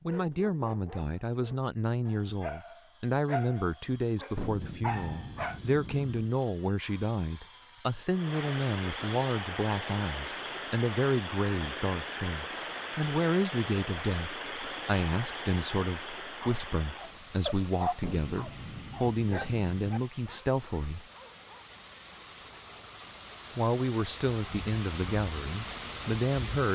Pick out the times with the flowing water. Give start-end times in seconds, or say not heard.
8.1-26.7.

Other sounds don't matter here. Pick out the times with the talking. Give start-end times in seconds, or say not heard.
0.1-21.1, 23.6-26.7.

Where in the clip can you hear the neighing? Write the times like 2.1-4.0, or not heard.
not heard.